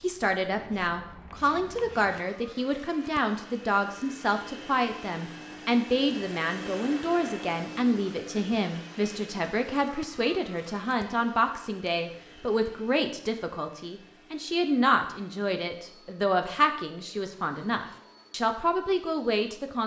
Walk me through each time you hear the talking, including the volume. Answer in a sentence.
The talking can be heard from 0.0 to 19.8 s, at a steady volume.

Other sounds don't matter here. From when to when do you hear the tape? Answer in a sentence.
You can't hear the tape here.